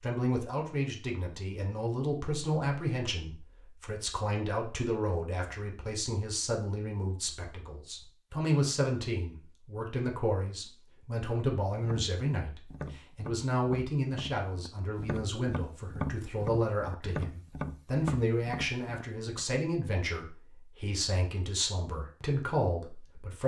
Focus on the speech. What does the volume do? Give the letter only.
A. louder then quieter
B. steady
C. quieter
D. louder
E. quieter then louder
B.